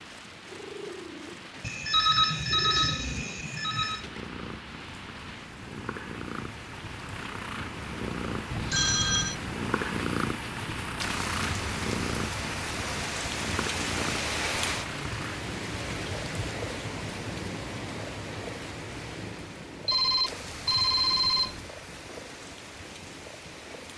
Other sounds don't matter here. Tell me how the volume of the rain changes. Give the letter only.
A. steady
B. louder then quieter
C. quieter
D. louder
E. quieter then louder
B.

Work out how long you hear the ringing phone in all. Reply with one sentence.
You can hear the ringing phone for 5 seconds altogether.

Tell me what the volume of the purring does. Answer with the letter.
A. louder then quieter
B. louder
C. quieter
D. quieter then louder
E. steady
A.